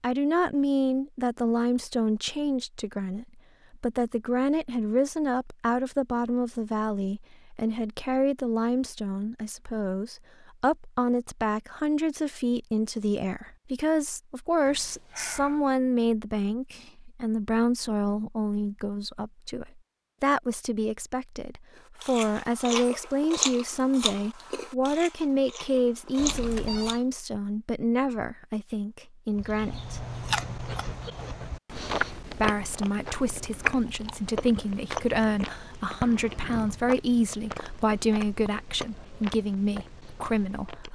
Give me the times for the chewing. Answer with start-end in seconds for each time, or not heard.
22.0-26.9, 29.4-40.9.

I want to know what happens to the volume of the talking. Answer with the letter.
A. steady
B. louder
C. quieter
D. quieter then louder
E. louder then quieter
A.